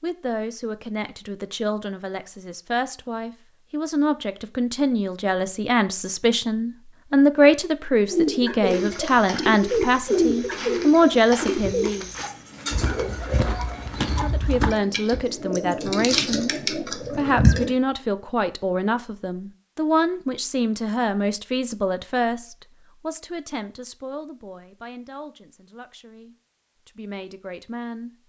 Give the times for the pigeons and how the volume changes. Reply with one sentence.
The pigeons can be heard from 8.1 to 17.8 s, getting quieter then louder.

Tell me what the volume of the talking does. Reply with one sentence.
The loudness of the talking goes up, then down.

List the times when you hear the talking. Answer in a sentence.
You can hear the talking from 0.0 to 12.1 s and from 14.2 to 28.1 s.